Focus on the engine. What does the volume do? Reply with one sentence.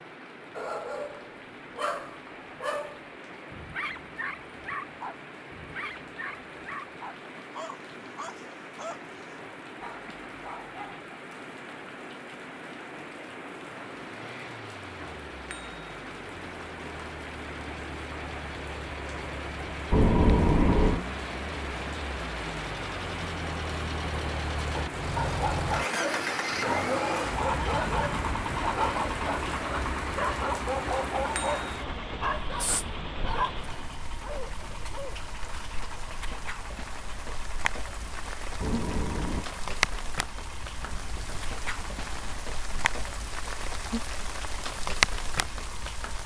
The volume of the engine goes up, then down.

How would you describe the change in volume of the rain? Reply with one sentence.
The volume of the rain goes up.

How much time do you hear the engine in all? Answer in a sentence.
You can hear the engine for 32 seconds altogether.